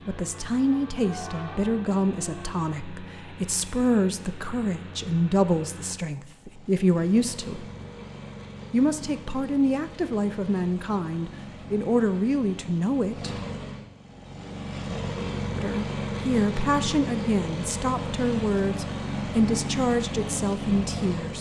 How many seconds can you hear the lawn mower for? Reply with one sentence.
You can hear the lawn mower for 21 seconds altogether.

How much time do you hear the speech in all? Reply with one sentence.
You can hear the speech for 18 seconds altogether.